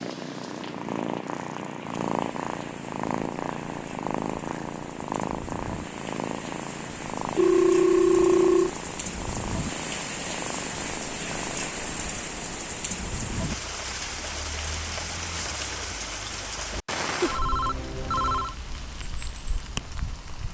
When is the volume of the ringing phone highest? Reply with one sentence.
The loudest moment of the ringing phone is at 8 seconds.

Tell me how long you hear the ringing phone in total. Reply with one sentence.
You can hear the ringing phone for 3 seconds altogether.